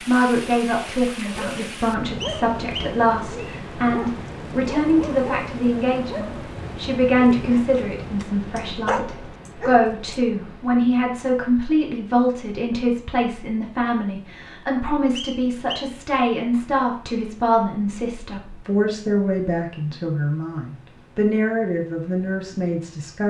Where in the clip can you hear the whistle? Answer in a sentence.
You can hear the whistle from 2.2 to 3.6 s and from 15.2 to 15.9 s.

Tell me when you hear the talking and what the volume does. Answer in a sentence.
The talking can be heard from 0.0 to 23.2 s, at a steady volume.